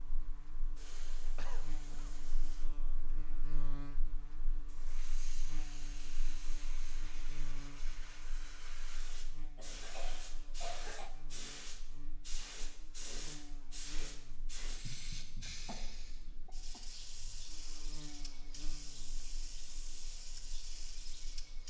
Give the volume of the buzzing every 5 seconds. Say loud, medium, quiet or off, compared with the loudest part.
loud, loud, medium, medium, quiet.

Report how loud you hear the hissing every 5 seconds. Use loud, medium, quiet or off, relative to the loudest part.
quiet, medium, loud, loud, loud.